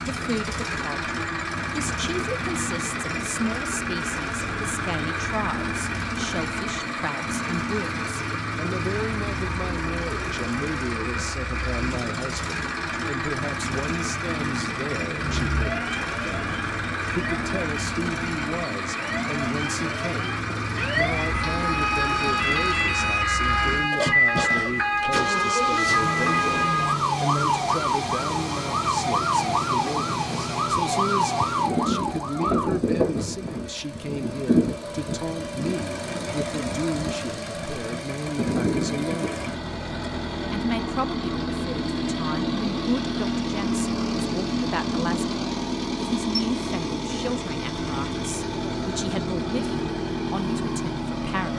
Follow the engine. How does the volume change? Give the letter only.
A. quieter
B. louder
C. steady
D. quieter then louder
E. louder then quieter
C.